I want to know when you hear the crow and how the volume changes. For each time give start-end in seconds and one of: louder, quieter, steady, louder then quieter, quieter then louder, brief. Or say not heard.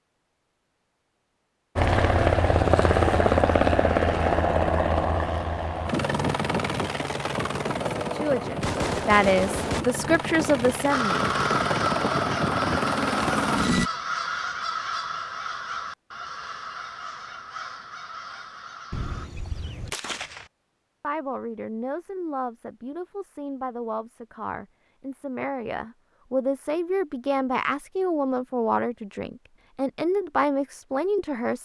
10.9-19.3 quieter.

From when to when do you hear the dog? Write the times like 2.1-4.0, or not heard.
not heard.